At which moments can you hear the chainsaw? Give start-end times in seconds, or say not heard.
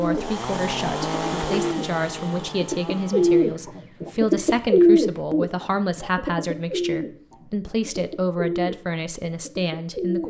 0.0-3.6.